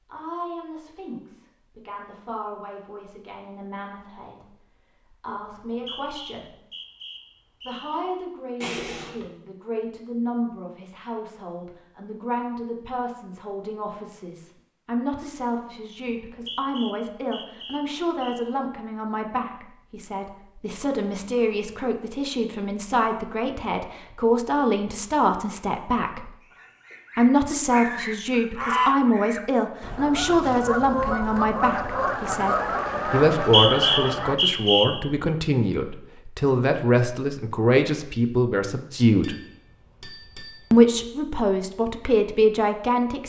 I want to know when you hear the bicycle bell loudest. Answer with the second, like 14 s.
9 s.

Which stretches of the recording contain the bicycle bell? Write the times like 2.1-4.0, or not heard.
8.6-9.2, 39.2-41.0.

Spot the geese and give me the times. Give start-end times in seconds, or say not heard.
26.4-34.4.